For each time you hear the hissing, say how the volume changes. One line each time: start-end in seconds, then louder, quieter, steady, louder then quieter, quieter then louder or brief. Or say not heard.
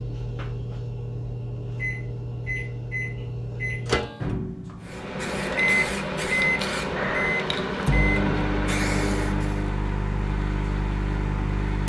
4.8-9.7 steady.